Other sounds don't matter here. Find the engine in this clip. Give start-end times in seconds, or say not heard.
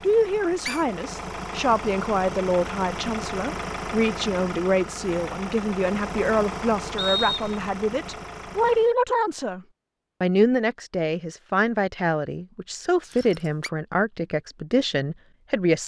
0.0-8.9.